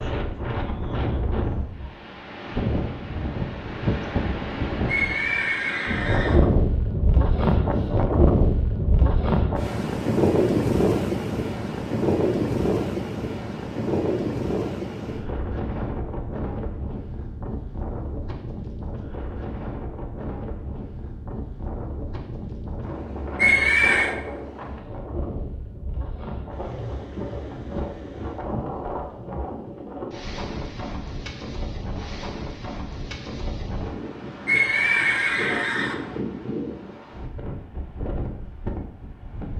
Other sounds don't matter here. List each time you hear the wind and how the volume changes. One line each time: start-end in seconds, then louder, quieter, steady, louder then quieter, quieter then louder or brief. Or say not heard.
0.0-39.5 quieter.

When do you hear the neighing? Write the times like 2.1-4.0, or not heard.
4.8-6.4, 23.4-24.1, 34.5-36.0.